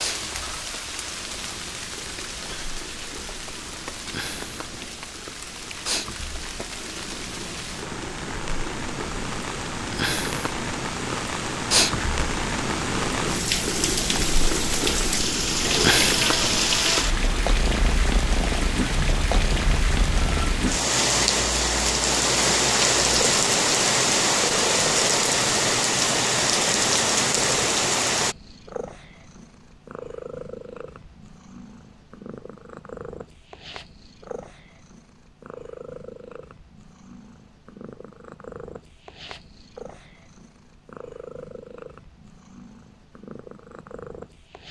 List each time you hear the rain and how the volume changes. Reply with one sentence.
You can hear the rain from 0.0 to 28.4 s, getting louder.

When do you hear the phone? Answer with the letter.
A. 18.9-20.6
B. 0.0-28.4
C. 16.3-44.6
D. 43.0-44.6
A.